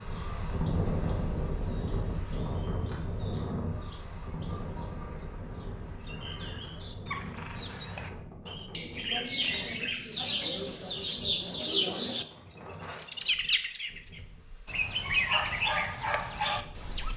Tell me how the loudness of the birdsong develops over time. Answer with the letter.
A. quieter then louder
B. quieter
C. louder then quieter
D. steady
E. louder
E.